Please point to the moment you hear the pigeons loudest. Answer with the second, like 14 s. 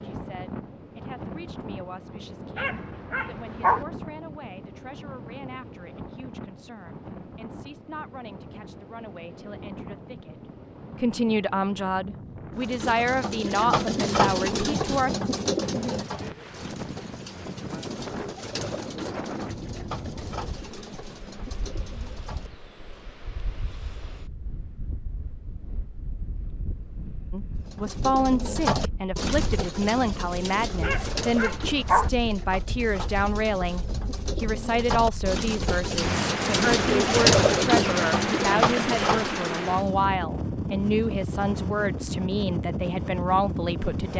37 s.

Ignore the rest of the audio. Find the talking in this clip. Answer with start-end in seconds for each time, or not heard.
0.0-15.1, 27.3-44.1.